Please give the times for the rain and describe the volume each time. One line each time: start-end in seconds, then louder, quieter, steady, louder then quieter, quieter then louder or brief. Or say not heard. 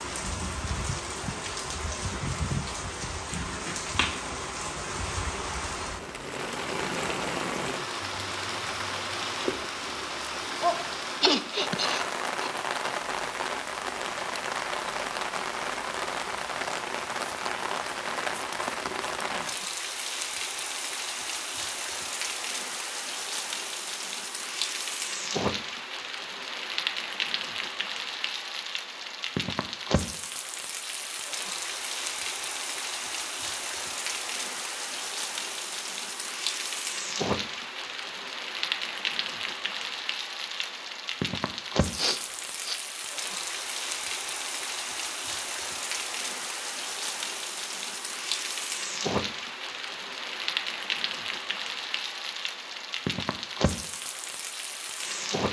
0.0-55.4 steady.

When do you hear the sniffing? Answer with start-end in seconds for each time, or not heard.
11.2-12.5, 42.0-42.8.